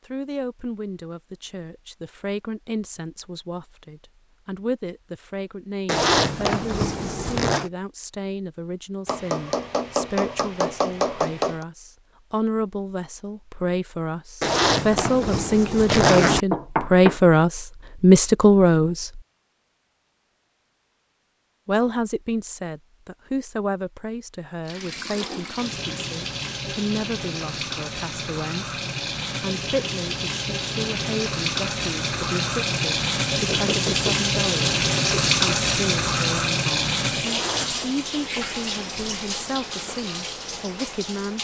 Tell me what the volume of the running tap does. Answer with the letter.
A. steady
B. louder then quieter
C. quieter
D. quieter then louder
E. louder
B.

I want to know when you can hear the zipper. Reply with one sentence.
You can hear the zipper from 5.8 to 7.7 s, from 14.4 to 16.4 s and from 37.2 to 37.9 s.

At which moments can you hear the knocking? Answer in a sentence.
The knocking can be heard from 9.1 to 11.7 s, from 15.8 to 17.2 s and from 33.5 to 34.1 s.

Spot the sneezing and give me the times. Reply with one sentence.
You can't hear the sneezing here.